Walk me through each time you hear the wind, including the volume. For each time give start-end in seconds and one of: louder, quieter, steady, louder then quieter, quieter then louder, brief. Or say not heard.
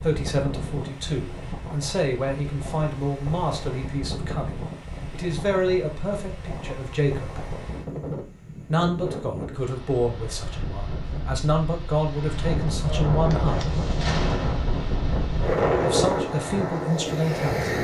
0.0-17.7 louder.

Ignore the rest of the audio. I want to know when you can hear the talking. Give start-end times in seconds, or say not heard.
0.0-7.5, 8.7-13.7, 15.8-17.7.